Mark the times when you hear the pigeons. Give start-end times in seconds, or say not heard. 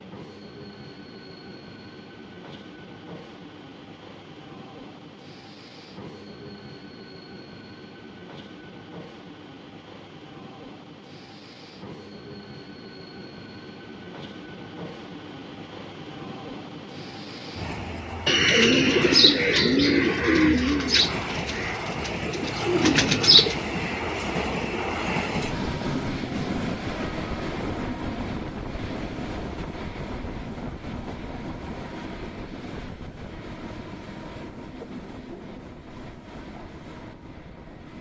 18.2-23.6.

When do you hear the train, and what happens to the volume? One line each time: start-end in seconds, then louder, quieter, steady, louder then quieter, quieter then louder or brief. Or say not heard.
0.0-37.9 louder then quieter.